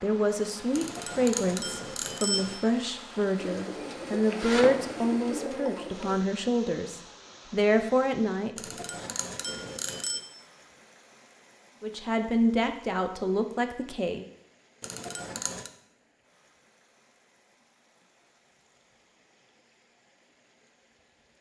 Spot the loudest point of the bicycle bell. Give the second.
2 s.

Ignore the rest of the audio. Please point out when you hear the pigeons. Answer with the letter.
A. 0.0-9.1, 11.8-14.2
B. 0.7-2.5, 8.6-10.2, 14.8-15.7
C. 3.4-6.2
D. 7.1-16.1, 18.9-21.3
C.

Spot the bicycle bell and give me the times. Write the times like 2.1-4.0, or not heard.
0.7-2.5, 8.6-10.2, 14.8-15.7.